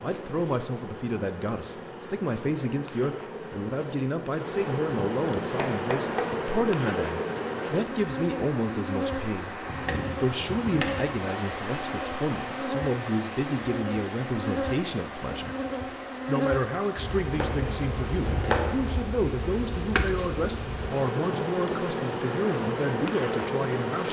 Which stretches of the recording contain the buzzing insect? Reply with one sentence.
The buzzing insect can be heard from 0.0 to 24.0 s.